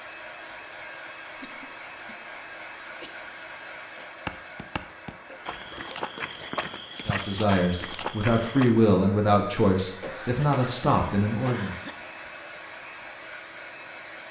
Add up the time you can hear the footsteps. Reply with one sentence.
You can hear the footsteps for 5 seconds altogether.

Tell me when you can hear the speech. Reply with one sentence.
The speech can be heard from 7.0 to 11.8 s.